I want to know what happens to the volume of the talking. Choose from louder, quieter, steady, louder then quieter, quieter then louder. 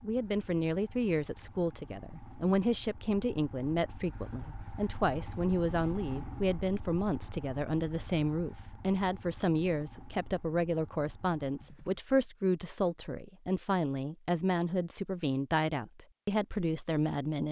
steady.